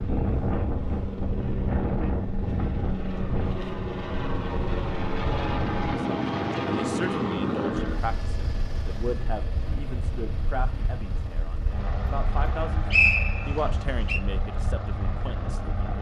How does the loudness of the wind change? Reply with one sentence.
The volume of the wind goes down.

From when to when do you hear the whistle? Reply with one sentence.
The whistle can be heard from 12.9 to 14.2 s.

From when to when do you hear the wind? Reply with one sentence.
The wind can be heard from 0.0 to 15.9 s.